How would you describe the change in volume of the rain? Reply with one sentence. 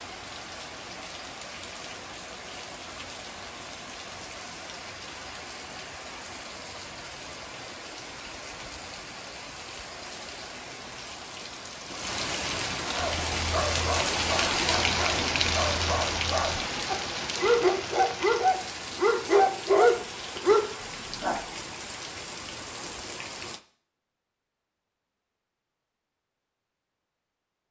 The volume of the rain goes up, then down.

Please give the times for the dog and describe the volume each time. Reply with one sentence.
You can hear the dog from 12.9 to 21.4 s, getting louder.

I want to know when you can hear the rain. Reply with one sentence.
You can hear the rain from 0.0 to 23.6 s.